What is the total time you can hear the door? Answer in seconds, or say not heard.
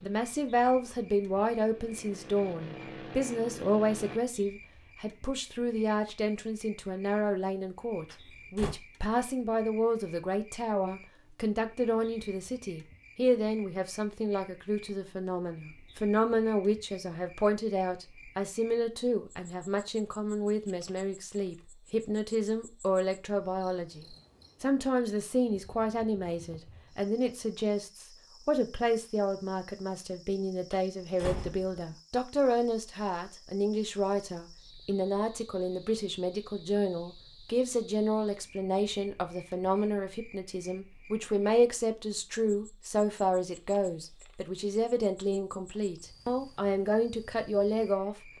2 s.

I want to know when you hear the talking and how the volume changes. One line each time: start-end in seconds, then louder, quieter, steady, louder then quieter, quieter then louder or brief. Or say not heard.
0.0-48.1 steady.